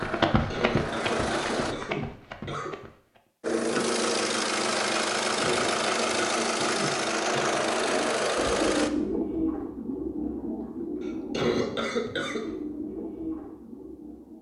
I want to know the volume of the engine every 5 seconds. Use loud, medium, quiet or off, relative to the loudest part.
loud, loud, off.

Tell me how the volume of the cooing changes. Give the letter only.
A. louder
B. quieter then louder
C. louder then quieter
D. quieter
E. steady
D.